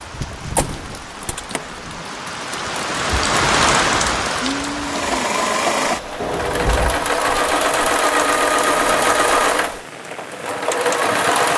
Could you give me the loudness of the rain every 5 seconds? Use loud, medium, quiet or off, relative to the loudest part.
loud, medium, medium.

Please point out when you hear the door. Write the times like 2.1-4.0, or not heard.
0.2-1.9, 6.2-8.0.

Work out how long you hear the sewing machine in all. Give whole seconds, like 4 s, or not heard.
7 s.